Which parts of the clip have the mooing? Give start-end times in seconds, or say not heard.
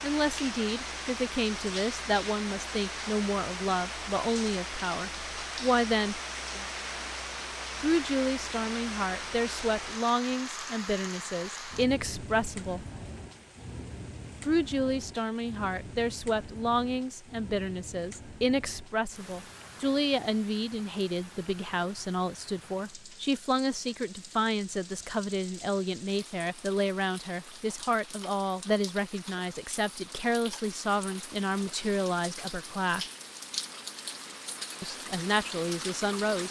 not heard.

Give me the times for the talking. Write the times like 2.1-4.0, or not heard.
0.0-6.2, 7.8-12.8, 14.4-33.0, 34.8-36.4.